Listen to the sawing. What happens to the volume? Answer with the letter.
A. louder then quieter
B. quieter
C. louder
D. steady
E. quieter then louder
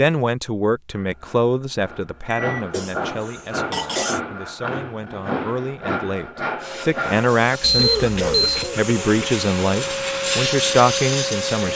C.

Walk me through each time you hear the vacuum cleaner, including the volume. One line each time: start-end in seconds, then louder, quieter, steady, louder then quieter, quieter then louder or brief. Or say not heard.
6.5-11.7 louder.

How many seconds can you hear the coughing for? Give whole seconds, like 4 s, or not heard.
3 s.